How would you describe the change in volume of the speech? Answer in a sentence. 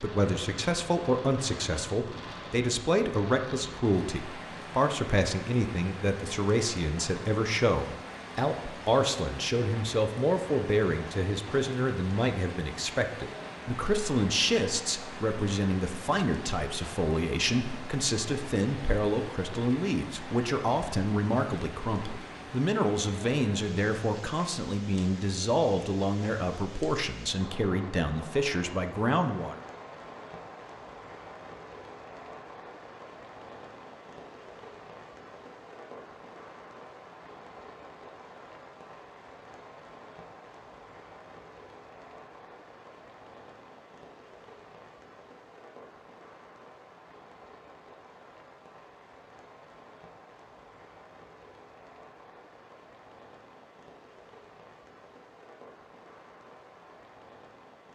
The loudness of the speech stays about the same.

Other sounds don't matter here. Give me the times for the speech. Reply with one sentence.
The speech can be heard from 0.0 to 29.6 s.